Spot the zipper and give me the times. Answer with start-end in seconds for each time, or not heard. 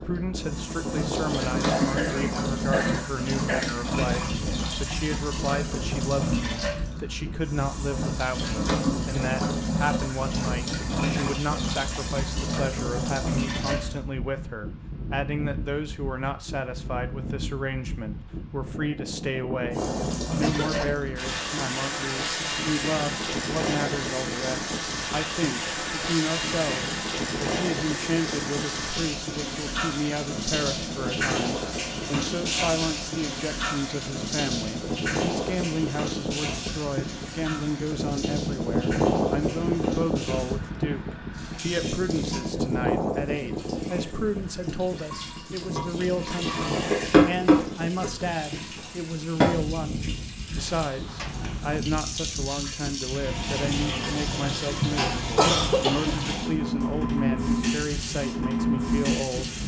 not heard.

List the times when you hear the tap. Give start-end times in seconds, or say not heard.
0.0-14.1, 19.7-59.6.